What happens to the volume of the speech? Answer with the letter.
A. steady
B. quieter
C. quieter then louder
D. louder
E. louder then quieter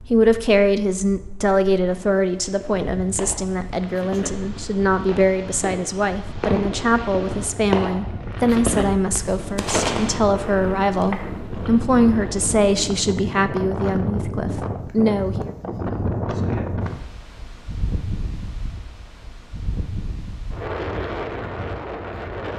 A.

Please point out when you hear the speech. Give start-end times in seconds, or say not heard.
0.1-15.5.